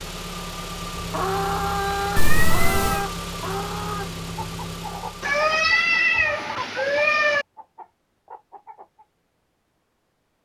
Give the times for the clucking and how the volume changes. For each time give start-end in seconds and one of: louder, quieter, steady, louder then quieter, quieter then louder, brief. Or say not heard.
1.0-9.1 quieter.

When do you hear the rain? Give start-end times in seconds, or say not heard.
not heard.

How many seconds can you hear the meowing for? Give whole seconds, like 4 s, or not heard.
3 s.